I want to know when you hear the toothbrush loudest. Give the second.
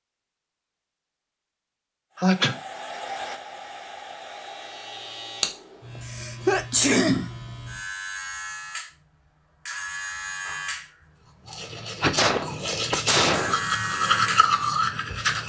14 s.